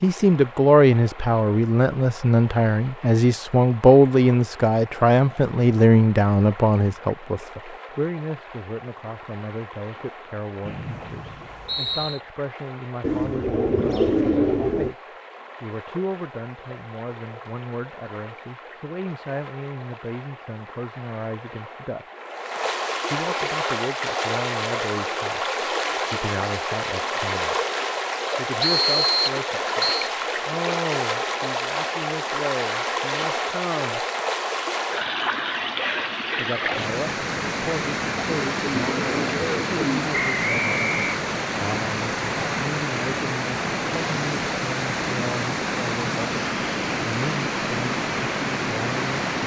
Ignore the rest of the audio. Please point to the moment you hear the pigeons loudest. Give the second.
14 s.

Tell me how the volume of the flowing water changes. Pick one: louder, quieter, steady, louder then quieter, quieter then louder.
louder.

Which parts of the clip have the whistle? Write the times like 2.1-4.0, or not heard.
10.7-12.2, 28.6-30.1, 40.4-41.1.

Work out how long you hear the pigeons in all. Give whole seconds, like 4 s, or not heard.
4 s.